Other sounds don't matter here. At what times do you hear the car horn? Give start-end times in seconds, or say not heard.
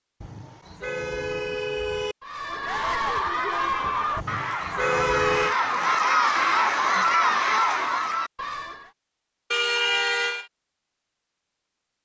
0.2-2.1, 4.2-5.5, 9.5-10.5.